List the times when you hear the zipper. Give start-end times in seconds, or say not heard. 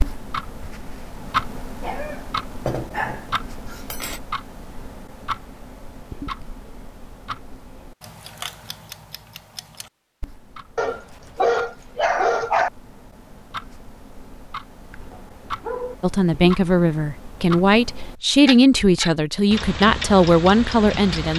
not heard.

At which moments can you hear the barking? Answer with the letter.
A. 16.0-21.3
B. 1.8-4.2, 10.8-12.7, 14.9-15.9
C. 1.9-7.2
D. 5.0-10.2
B.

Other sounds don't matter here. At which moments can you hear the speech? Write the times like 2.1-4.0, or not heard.
16.0-21.3.